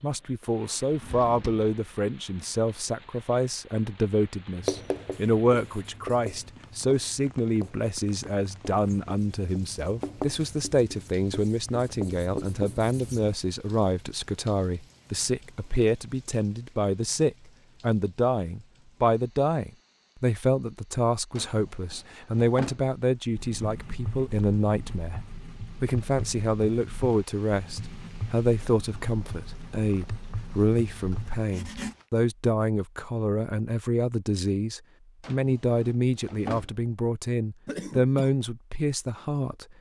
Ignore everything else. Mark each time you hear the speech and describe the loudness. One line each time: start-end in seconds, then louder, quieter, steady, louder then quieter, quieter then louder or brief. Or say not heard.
0.0-39.6 steady.